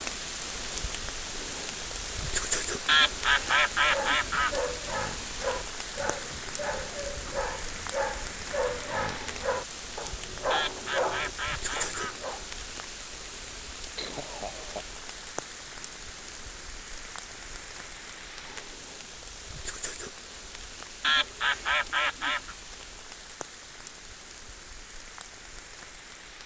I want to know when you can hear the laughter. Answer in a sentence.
You can hear the laughter from 13.9 to 14.8 s.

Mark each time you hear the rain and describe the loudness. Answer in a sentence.
The rain can be heard from 0.0 to 26.4 s, getting quieter.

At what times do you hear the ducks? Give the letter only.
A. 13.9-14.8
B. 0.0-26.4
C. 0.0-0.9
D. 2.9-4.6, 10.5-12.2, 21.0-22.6
D.